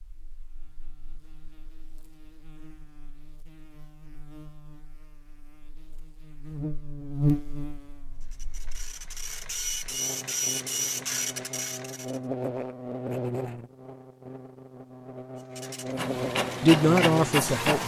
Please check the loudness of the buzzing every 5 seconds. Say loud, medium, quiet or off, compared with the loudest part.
quiet, loud, loud, loud.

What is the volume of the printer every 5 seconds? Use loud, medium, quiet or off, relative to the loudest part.
off, medium, loud, loud.